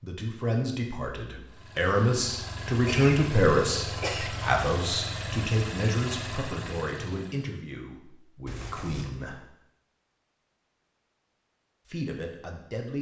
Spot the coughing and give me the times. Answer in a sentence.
The coughing can be heard from 2.9 to 4.3 s and from 8.4 to 9.1 s.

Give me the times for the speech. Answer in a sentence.
The speech can be heard from 0.0 to 9.4 s and from 11.8 to 12.9 s.